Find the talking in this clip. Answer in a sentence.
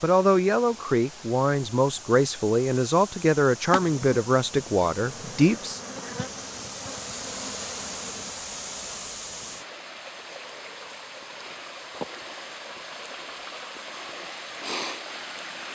The talking can be heard from 0.0 to 5.8 s.